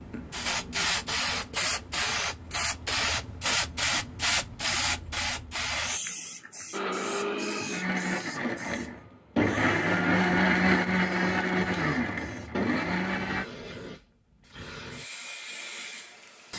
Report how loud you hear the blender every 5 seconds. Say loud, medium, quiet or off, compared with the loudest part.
off, loud, loud, off.